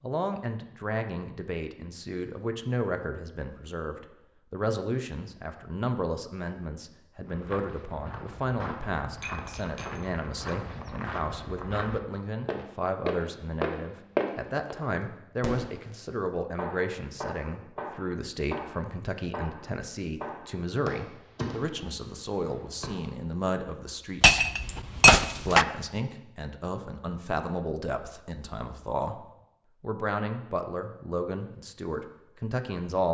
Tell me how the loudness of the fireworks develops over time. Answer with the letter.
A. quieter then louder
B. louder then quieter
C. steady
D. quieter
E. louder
C.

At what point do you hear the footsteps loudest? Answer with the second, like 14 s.
14 s.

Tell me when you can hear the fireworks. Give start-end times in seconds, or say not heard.
15.4-23.1.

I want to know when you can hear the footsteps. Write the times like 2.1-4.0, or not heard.
7.2-14.8.